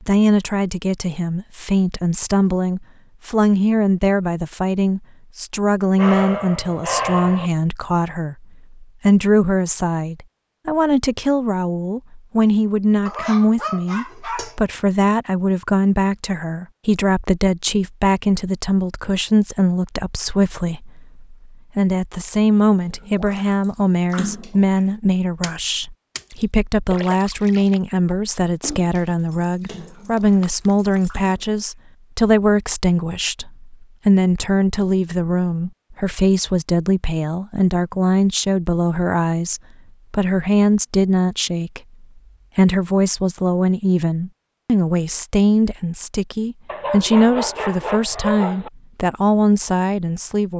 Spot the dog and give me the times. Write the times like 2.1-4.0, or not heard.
6.0-7.5, 13.1-14.6, 29.3-31.1, 46.6-48.7.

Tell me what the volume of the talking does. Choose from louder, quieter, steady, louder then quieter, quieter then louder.
steady.